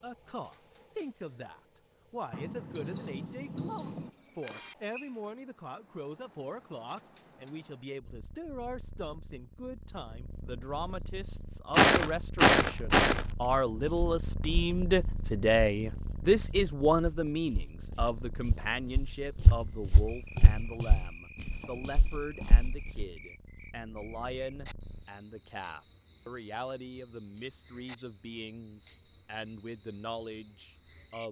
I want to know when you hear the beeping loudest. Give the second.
4 s.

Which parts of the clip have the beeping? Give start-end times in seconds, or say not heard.
2.3-4.1.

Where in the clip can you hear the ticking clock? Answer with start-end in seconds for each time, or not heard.
not heard.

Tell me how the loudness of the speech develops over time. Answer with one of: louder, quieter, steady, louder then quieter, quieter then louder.
louder then quieter.